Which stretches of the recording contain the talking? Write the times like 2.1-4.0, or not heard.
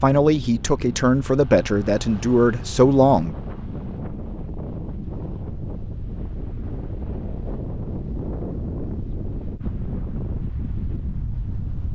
0.0-3.4.